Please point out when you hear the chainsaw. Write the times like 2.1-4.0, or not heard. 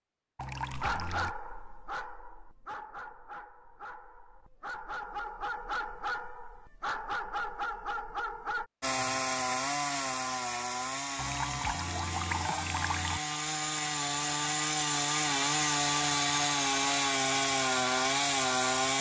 8.8-18.9.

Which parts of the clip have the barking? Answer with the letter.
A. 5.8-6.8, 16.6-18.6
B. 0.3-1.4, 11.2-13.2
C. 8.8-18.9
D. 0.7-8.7
D.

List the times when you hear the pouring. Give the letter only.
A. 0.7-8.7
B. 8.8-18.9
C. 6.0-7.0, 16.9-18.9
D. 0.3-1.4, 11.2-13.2
D.